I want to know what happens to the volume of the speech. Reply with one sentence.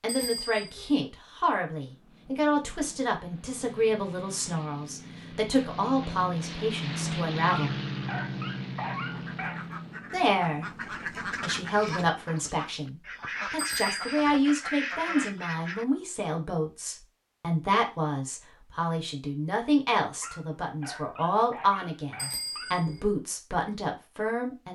The volume of the speech stays about the same.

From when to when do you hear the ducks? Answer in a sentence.
The ducks can be heard from 8.9 to 15.8 s.